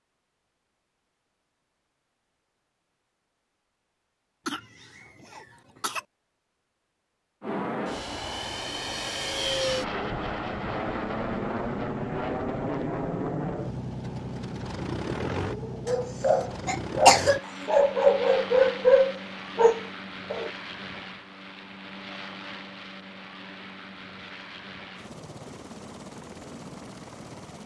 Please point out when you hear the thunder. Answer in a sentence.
You can't hear the thunder here.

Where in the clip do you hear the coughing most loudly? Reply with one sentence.
The volume of the coughing peaks at 17 seconds.